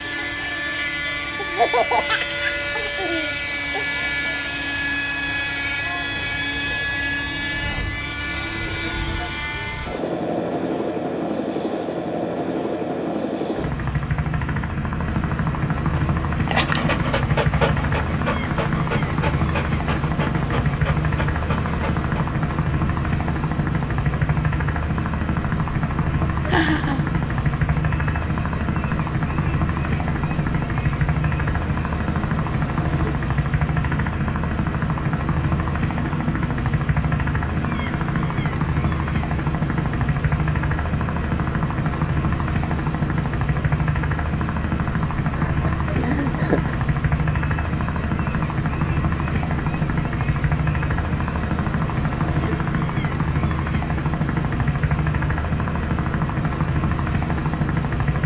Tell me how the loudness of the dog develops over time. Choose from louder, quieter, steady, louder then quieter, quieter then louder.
quieter.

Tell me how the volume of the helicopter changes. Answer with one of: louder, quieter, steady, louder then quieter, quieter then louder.
steady.